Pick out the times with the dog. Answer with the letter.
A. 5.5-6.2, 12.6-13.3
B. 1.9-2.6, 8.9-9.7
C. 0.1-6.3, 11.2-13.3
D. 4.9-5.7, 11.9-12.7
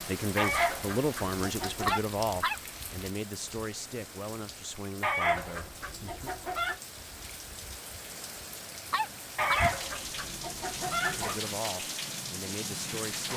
B.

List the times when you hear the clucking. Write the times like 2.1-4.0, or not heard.
0.3-2.0, 5.0-6.8, 9.3-11.4.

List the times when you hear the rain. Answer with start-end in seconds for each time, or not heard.
0.0-13.3.